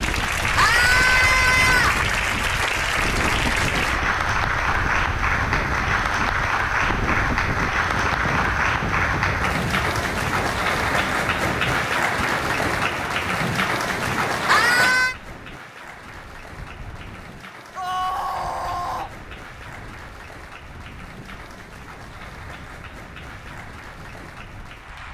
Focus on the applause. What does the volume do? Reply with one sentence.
The volume of the applause goes down.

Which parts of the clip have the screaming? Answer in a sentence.
The screaming can be heard from 0.6 to 2.0 s, from 14.4 to 15.2 s and from 17.8 to 19.1 s.